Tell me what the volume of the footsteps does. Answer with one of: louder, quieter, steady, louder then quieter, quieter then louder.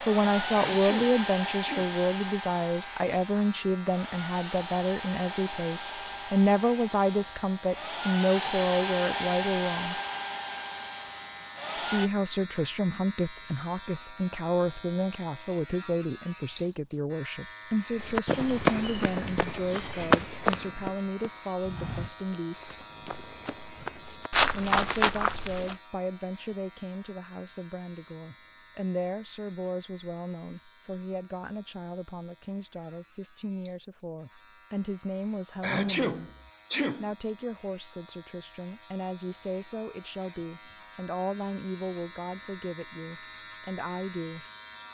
quieter then louder.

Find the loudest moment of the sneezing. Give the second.
36 s.